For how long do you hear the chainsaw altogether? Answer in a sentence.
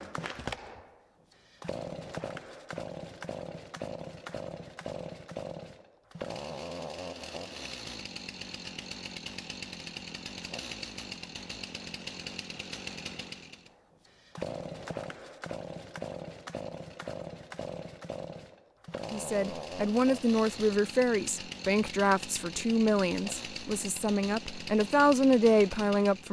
You can hear the chainsaw for 26 seconds altogether.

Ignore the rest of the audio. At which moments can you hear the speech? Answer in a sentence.
You can hear the speech from 19.1 to 26.2 s.